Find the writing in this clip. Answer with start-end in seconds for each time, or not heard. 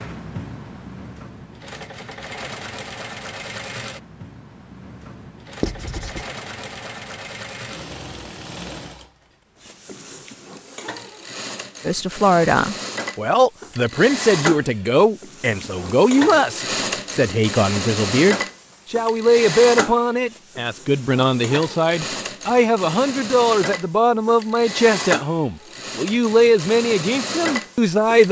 5.6-6.2.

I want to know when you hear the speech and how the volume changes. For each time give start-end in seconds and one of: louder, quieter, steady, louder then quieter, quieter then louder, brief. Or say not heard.
11.8-28.2 steady.